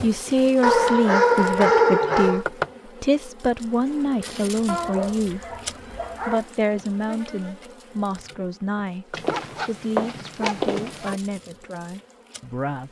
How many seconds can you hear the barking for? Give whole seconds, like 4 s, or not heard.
6 s.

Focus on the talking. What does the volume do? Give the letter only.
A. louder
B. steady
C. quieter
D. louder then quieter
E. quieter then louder
C.